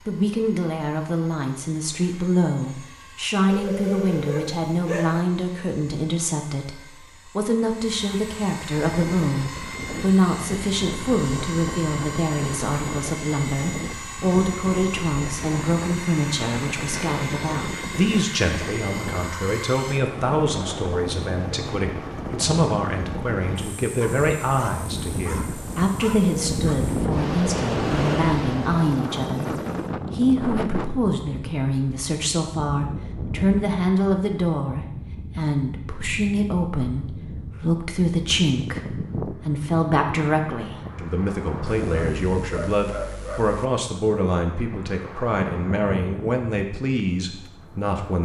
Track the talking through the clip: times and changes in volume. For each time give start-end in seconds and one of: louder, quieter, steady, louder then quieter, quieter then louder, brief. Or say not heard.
0.1-29.5 steady
30.1-48.2 steady.